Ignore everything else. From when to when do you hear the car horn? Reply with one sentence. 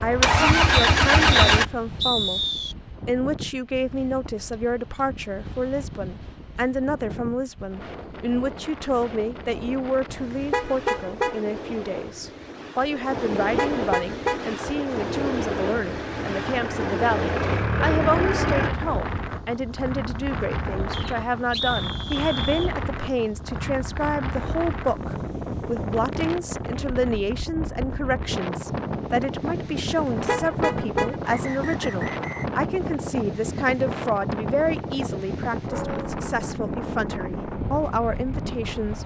You can hear the car horn from 10.1 to 11.4 s, from 13.2 to 14.4 s and from 29.9 to 31.1 s.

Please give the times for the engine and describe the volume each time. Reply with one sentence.
You can hear the engine briefly from 0.0 to 1.6 s; and from 14.7 to 18.7 s, getting louder.